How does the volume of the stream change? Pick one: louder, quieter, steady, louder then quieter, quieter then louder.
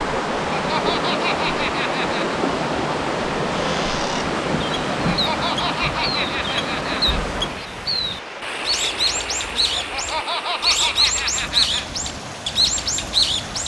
quieter.